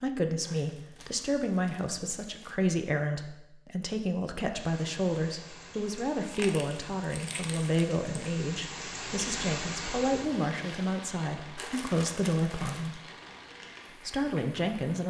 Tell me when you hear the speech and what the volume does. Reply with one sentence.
The speech can be heard from 0.0 to 13.0 s, at a steady volume; and briefly from 13.9 to 15.0 s.